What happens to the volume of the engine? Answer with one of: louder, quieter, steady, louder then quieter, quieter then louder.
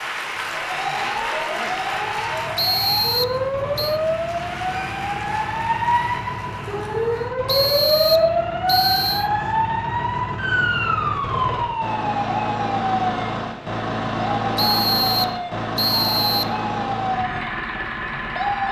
louder.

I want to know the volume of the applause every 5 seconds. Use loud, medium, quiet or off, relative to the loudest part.
loud, medium, off, off.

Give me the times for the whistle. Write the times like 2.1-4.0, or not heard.
2.5-4.0, 7.5-9.3, 14.6-16.6.